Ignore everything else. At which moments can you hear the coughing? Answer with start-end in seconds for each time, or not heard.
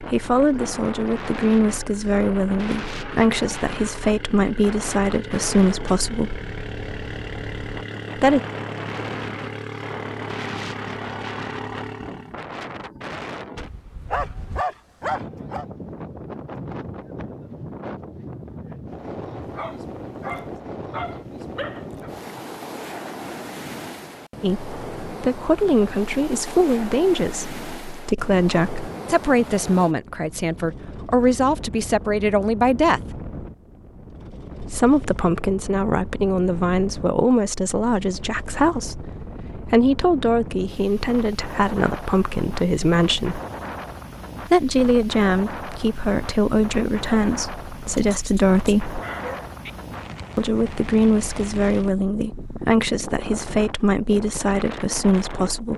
not heard.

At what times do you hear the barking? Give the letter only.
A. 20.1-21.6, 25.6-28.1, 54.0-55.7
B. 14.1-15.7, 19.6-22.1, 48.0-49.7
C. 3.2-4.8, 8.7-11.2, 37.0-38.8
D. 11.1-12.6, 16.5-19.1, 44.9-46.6
B.